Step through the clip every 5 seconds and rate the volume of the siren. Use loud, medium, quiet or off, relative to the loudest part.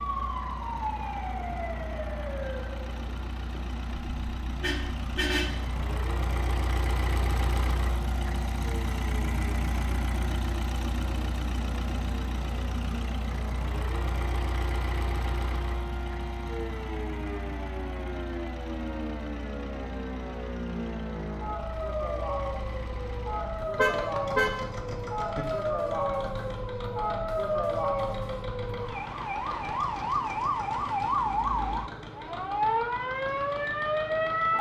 medium, quiet, quiet, medium, medium, loud, loud.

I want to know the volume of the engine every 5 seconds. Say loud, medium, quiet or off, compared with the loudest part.
medium, loud, loud, medium, medium, medium, medium.